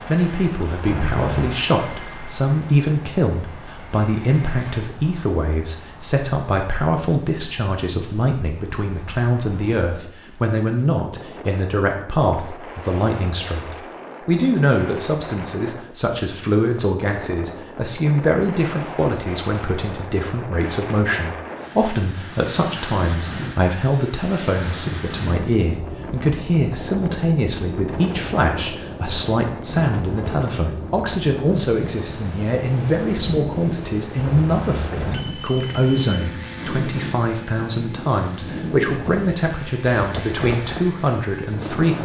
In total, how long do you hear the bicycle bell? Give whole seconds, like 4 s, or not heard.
3 s.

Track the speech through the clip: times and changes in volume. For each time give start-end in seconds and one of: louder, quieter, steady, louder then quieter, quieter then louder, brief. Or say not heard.
0.1-42.0 steady.